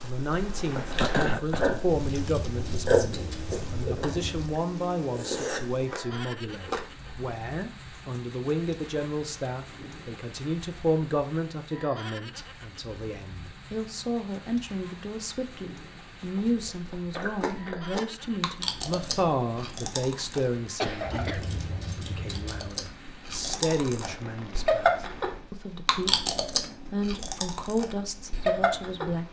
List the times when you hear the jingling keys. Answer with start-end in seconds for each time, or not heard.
2.0-4.5, 21.1-22.7.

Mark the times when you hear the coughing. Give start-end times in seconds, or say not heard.
0.9-1.8, 20.8-21.4.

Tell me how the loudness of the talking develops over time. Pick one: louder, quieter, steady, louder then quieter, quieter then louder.
steady.